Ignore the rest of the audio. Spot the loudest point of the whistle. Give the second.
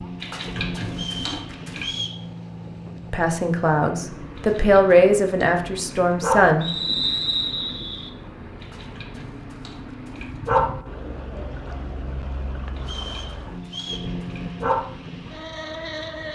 7 s.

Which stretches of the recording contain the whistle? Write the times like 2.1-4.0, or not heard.
0.9-2.2, 6.6-8.1, 12.8-14.1.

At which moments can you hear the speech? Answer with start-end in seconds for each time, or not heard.
3.1-6.7.